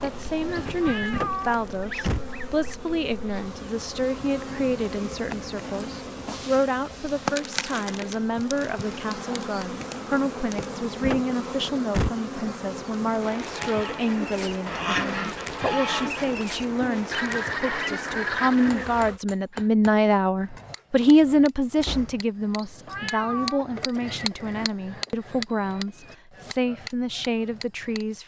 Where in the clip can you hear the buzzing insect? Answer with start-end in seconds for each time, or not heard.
0.0-19.2.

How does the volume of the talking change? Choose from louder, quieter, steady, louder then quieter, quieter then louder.
louder then quieter.